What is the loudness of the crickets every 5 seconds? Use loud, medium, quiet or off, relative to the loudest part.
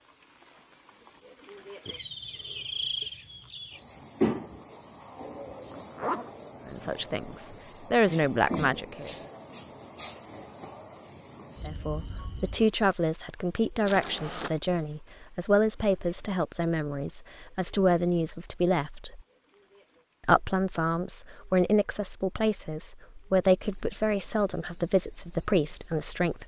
loud, loud, medium, quiet, quiet, quiet.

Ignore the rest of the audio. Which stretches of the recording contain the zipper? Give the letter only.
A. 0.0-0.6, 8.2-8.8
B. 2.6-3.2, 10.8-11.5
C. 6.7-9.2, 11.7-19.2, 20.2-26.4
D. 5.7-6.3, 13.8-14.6
D.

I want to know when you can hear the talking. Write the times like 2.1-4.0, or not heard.
6.7-9.2, 11.7-19.2, 20.2-26.4.